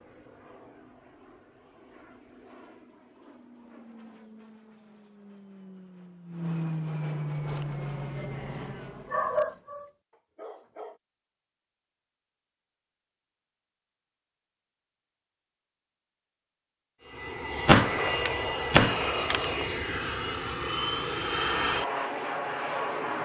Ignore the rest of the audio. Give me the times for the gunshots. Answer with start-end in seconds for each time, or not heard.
17.6-19.5.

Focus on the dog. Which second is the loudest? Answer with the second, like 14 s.
9 s.